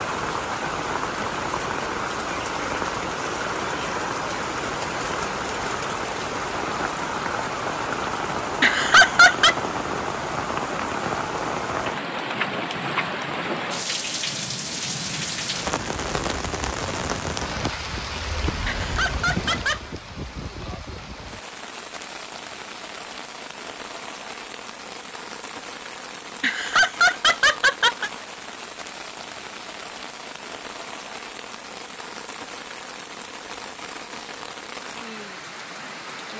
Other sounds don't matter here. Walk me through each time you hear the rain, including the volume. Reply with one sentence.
You can hear the rain from 0.0 to 36.3 s, getting quieter.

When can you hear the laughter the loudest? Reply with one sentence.
The volume of the laughter peaks at 9 seconds.